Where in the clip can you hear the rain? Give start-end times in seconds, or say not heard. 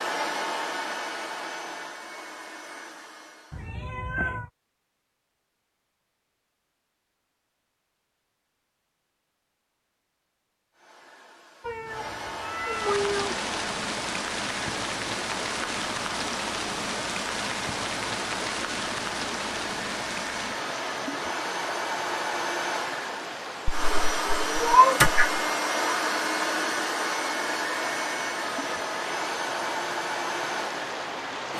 12.7-31.5.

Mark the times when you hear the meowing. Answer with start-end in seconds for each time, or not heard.
3.5-4.5, 11.6-13.4, 23.6-25.4.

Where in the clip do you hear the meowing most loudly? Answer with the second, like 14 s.
25 s.